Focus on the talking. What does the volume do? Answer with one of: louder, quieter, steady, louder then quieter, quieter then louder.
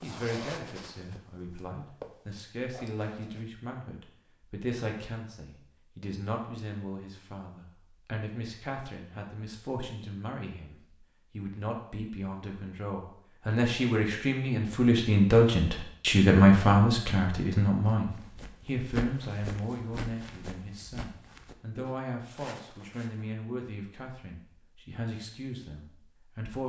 louder then quieter.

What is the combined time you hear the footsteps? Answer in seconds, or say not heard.
9 s.